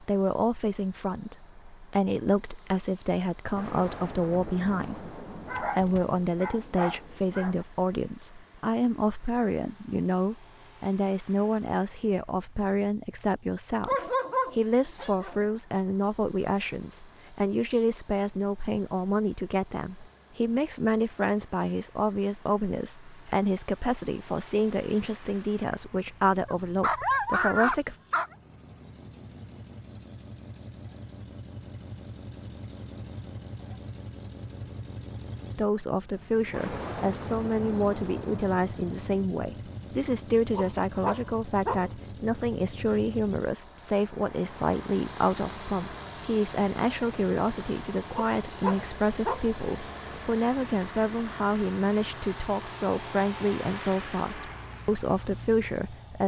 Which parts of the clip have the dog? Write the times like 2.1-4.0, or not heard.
5.5-7.7, 13.8-15.4, 26.4-28.4, 40.5-41.9, 48.1-49.5.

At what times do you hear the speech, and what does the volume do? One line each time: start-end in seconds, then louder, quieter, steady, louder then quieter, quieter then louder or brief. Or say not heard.
0.0-27.9 steady
35.5-56.2 steady.